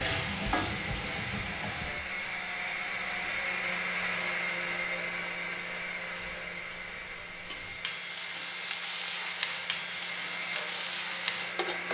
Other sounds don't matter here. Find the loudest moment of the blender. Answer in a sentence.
The volume of the blender peaks at 4 seconds.